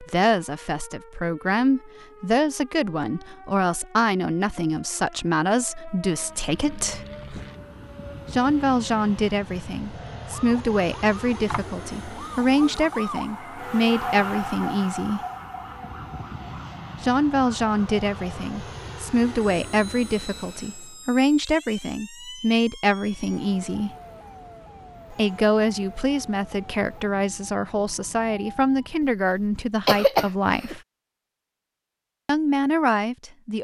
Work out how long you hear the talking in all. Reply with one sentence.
You can hear the talking for 28 seconds altogether.